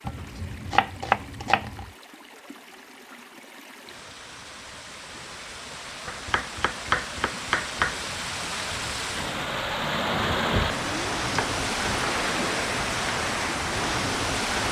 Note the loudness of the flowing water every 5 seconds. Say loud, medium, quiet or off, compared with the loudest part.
quiet, medium, loud.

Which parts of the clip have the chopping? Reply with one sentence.
The chopping can be heard from 0.1 to 1.9 s, from 6.0 to 8.0 s and from 10.5 to 12.0 s.